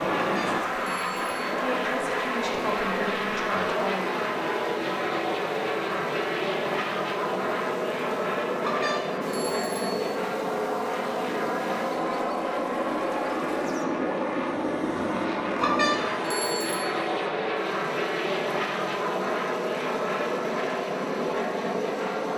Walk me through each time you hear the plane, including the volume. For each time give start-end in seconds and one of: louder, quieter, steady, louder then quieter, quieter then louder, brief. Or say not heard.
0.0-22.3 steady.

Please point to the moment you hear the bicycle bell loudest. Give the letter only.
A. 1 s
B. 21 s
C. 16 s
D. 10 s
C.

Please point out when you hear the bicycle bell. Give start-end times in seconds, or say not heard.
0.1-1.4, 8.6-9.9, 15.6-16.9.